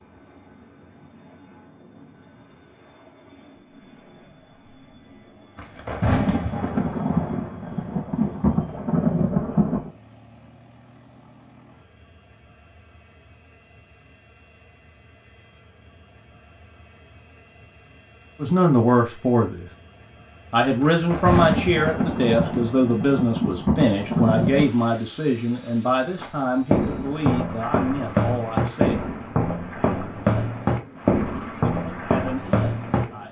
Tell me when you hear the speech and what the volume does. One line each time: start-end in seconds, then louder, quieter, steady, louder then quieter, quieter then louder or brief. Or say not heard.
18.4-19.6 brief
20.5-29.1 quieter
31.6-33.2 brief.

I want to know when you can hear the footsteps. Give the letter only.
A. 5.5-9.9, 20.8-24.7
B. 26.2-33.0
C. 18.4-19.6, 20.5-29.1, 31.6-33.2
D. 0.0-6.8
B.